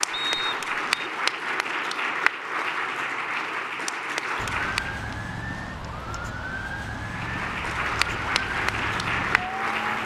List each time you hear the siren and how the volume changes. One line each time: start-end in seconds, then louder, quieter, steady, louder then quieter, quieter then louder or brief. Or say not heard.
4.3-10.0 steady.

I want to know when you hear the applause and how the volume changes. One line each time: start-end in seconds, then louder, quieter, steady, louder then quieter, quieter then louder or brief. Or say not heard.
0.0-5.2 steady
7.0-10.0 brief.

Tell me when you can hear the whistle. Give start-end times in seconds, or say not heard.
0.1-1.1.